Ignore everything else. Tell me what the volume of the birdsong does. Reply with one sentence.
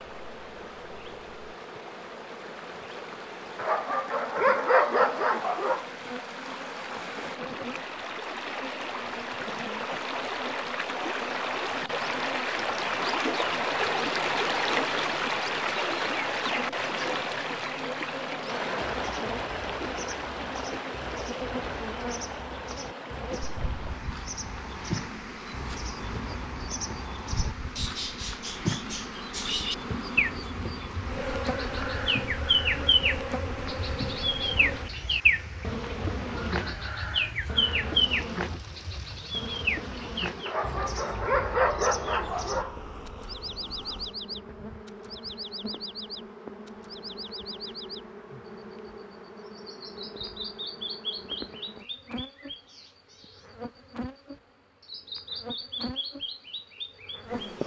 The volume of the birdsong goes up, then down.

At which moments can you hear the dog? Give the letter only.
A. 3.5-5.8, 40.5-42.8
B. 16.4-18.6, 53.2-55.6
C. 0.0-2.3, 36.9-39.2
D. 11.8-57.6
A.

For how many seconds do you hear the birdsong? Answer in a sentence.
You can hear the birdsong for 46 seconds altogether.